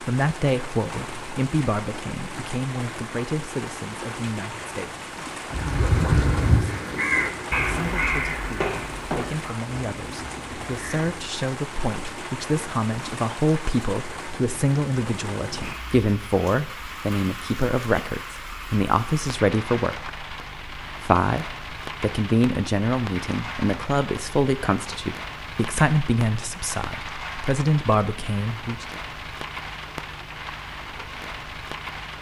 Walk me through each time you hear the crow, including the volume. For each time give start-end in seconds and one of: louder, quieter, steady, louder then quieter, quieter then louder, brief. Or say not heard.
5.5-11.2 quieter.